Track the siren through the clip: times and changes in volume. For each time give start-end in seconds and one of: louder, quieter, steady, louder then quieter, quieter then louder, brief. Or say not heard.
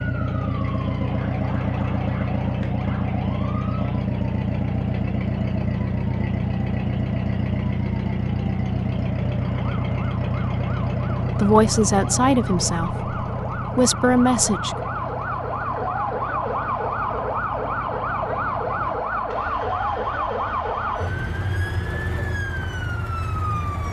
0.0-23.8 louder.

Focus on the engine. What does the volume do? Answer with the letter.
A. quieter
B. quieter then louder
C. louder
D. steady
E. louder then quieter
A.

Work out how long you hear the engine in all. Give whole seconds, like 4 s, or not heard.
22 s.